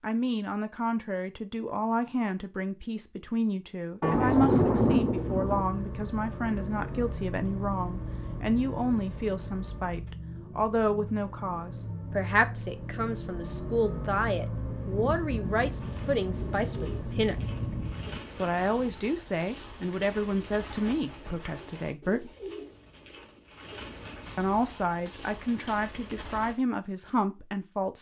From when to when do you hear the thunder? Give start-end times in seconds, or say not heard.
4.0-5.7, 14.7-18.2.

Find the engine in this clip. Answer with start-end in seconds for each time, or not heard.
4.1-17.9.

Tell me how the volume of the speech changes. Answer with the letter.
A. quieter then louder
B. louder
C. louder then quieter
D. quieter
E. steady
E.